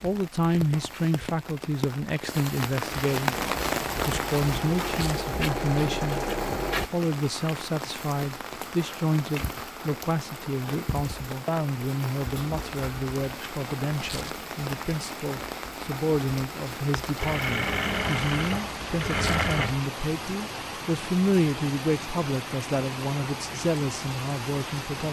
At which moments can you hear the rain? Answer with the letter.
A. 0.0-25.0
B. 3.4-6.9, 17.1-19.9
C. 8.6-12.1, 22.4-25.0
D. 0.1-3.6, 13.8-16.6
A.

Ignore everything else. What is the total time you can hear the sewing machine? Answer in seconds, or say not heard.
6 s.